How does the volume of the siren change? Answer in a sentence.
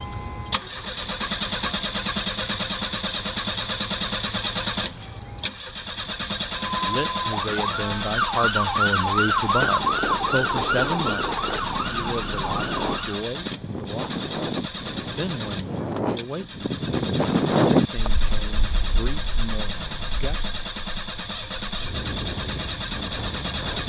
The loudness of the siren goes up, then down.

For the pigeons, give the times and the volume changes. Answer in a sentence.
You can't hear the pigeons here.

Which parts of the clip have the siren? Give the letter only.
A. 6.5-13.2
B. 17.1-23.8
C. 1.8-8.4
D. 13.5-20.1
A.